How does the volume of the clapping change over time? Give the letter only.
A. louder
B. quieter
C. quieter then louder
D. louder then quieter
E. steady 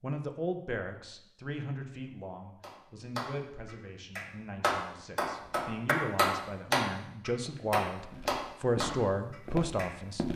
D.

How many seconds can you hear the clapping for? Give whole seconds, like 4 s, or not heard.
7 s.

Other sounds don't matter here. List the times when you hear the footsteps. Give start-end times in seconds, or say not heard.
7.5-10.3.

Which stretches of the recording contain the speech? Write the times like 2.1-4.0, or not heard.
0.0-10.3.